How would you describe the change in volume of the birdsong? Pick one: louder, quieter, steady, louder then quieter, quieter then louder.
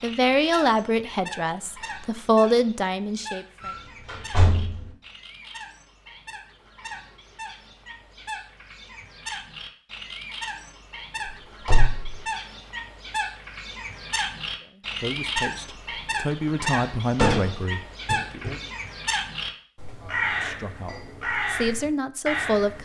louder.